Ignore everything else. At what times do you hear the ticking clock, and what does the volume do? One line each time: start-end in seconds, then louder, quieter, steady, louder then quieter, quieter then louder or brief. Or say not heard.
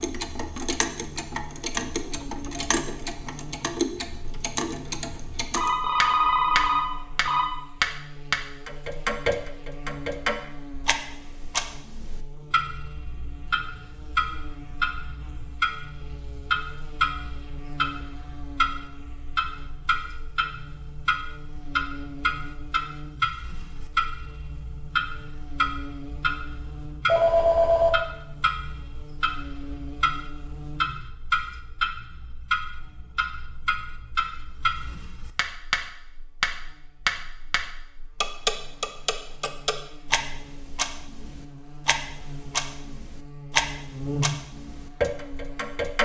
0.0-46.0 steady.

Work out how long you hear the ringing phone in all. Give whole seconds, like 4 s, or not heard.
3 s.